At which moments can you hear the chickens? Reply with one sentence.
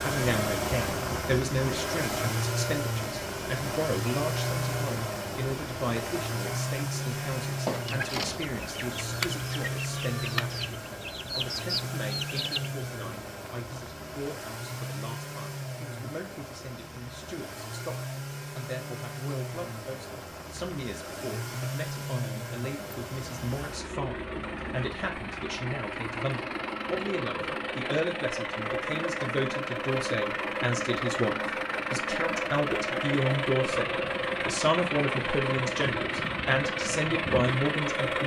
The chickens can be heard from 7.5 to 12.7 s.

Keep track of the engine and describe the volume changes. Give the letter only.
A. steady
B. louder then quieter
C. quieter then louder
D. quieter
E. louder
C.